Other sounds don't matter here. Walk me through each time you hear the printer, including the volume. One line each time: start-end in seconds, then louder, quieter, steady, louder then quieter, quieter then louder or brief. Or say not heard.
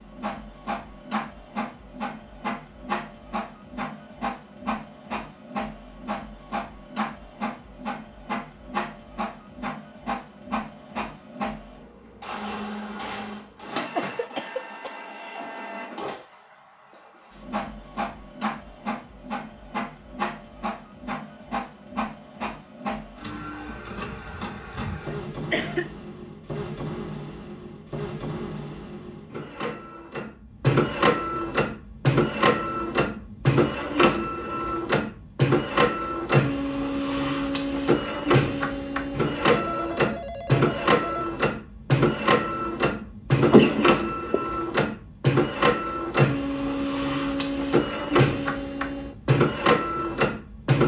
0.0-50.8 louder.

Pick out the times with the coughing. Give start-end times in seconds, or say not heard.
13.9-14.9, 24.1-25.9, 43.4-44.5.